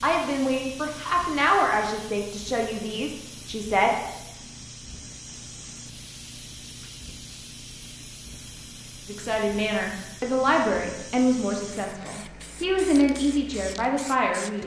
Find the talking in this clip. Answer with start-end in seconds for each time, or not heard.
0.0-4.0, 9.1-14.6.